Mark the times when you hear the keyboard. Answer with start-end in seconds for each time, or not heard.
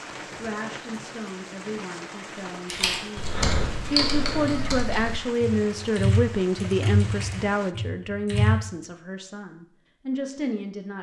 2.6-8.7.